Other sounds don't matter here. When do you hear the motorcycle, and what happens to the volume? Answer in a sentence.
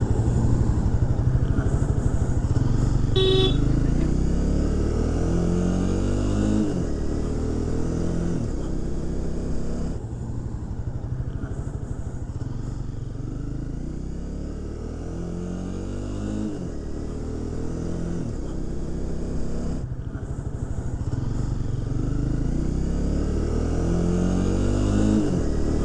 You can hear the motorcycle from 0.0 to 25.8 s, getting quieter then louder.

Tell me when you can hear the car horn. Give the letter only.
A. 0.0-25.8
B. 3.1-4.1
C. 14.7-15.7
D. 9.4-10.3
B.